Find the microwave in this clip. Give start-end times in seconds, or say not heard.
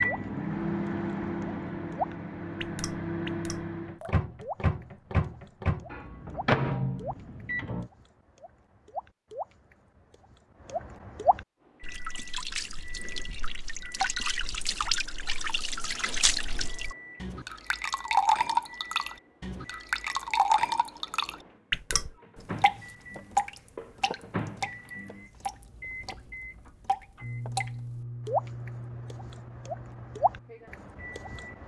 0.0-7.9, 11.6-31.6.